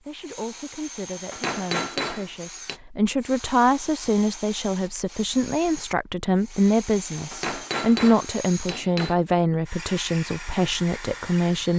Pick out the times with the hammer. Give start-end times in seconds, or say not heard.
1.3-2.8, 7.3-9.2.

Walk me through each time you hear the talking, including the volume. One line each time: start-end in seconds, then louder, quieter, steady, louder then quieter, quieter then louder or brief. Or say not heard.
0.1-11.7 louder.